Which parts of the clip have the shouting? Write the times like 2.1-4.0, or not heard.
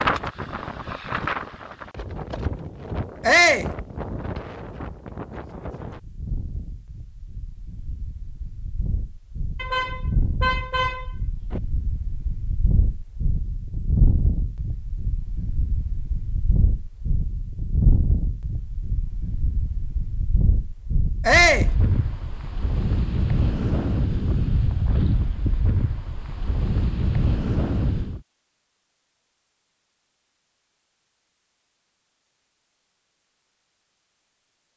3.2-3.7, 21.2-21.7.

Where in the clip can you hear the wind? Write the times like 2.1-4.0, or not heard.
0.0-28.2.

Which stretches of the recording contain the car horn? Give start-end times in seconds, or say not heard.
9.6-11.6.